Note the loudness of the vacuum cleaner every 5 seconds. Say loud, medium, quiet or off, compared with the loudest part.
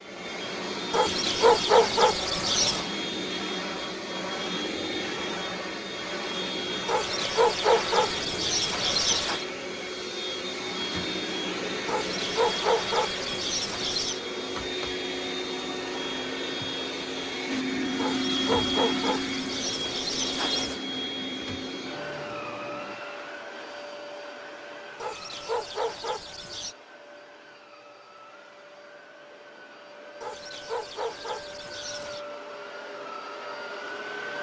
loud, loud, loud, loud, medium, quiet, medium.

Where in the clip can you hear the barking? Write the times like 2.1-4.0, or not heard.
0.9-2.9, 6.8-9.4, 11.8-14.2, 17.9-20.8, 25.0-26.8, 30.2-32.2.